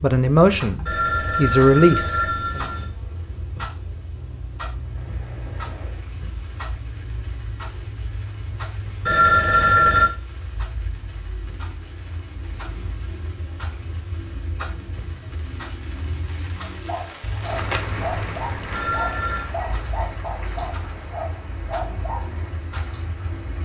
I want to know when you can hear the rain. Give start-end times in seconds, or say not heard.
4.7-23.5.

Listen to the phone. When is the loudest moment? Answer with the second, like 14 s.
10 s.